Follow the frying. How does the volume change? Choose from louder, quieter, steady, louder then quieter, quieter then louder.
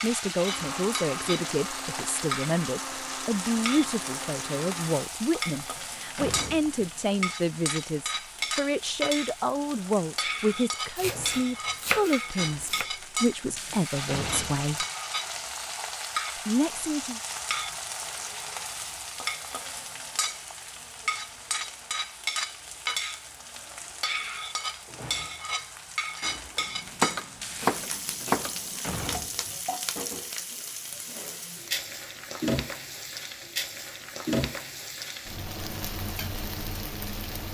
steady.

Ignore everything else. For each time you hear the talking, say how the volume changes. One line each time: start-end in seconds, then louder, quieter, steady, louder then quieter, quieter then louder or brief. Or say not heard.
0.0-14.8 steady
16.4-17.2 brief.